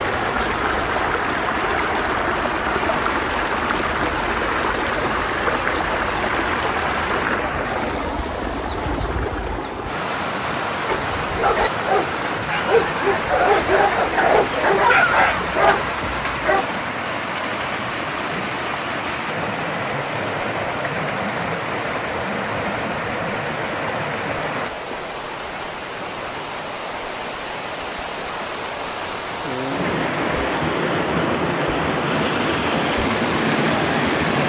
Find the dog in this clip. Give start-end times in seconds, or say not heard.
10.8-16.6.